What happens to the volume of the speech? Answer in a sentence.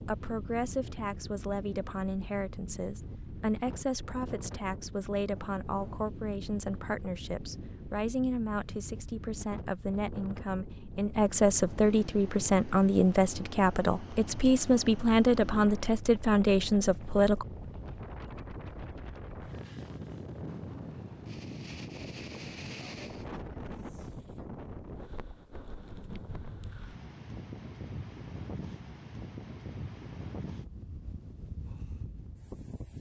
The loudness of the speech goes up.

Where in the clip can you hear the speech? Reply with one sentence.
The speech can be heard from 0.1 to 17.4 s.